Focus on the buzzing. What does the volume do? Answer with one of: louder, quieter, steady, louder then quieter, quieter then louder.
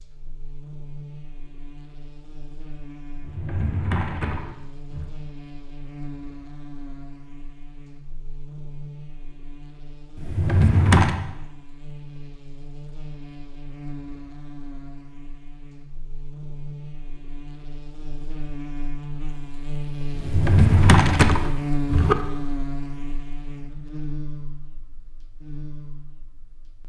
louder.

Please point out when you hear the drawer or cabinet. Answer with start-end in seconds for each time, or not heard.
3.1-5.1, 10.2-11.2, 20.1-22.1.